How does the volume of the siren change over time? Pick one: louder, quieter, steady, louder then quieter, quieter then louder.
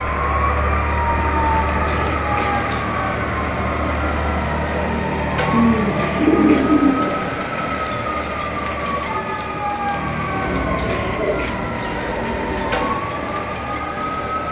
steady.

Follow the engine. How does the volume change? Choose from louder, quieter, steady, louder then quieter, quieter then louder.
quieter.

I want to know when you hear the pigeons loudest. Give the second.
6 s.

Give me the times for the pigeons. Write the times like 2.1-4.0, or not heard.
1.1-2.8, 5.5-7.2, 10.4-12.8.